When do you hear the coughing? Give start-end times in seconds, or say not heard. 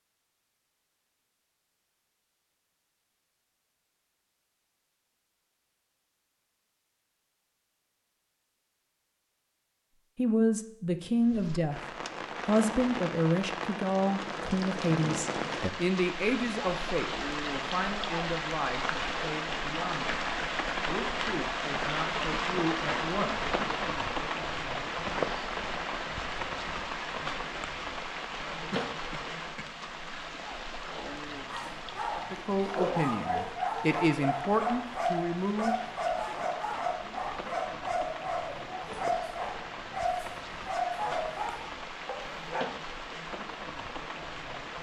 28.7-29.8.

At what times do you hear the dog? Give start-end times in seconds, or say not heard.
30.9-42.8.